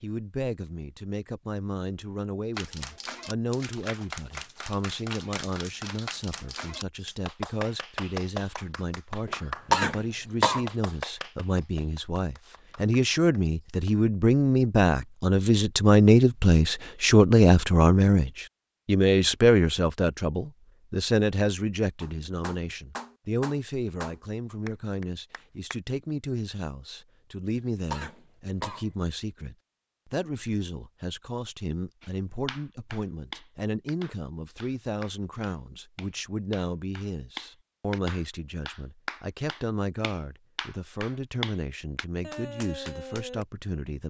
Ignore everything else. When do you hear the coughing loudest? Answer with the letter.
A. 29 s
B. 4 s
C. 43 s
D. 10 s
D.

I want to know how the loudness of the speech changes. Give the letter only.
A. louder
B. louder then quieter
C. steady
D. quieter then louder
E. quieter
B.